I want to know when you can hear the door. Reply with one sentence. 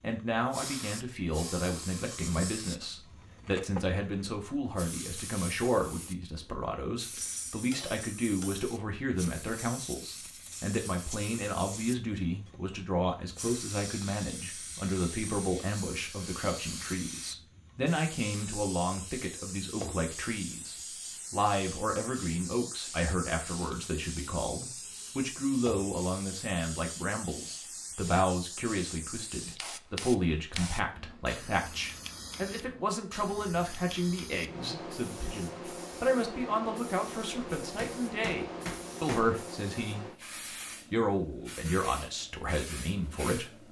The door can't be heard in this clip.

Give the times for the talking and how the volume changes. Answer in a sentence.
You can hear the talking from 0.0 to 40.0 s, at a steady volume; and briefly from 40.9 to 43.5 s.